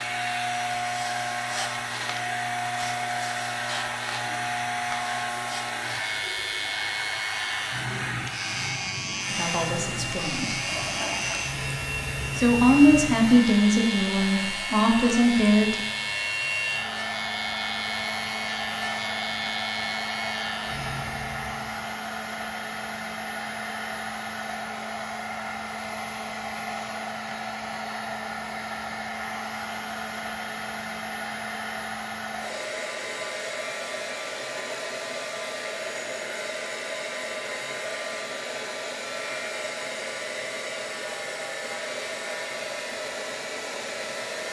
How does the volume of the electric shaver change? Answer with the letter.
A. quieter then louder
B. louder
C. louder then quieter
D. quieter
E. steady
E.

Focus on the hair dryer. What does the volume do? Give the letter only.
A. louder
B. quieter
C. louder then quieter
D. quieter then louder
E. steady
E.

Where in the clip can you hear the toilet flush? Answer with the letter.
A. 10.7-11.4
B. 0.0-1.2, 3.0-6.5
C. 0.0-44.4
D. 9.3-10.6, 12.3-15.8
A.